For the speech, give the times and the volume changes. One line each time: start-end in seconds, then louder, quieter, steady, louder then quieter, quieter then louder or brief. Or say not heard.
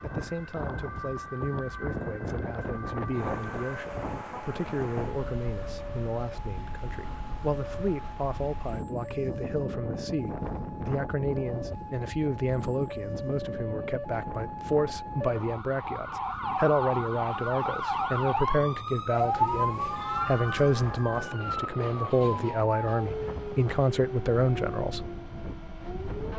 0.0-25.1 louder.